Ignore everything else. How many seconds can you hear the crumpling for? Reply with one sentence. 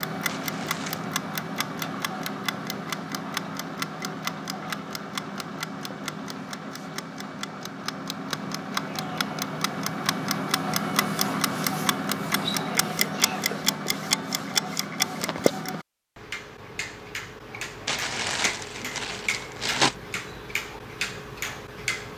The crumpling can be heard for 3 seconds in total.